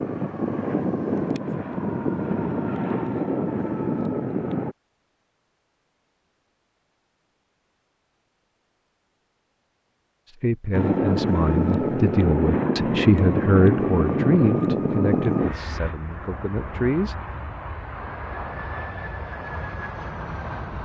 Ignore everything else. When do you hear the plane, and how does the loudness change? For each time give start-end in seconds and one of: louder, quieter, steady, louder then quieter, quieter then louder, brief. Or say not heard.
0.0-4.8 steady
10.7-20.8 quieter.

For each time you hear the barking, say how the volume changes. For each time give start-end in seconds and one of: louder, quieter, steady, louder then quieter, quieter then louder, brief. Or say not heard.
not heard.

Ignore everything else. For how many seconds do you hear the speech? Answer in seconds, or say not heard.
7 s.